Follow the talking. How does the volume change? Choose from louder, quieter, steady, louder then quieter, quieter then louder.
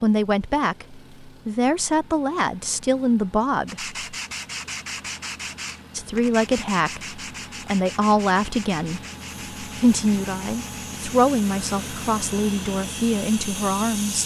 steady.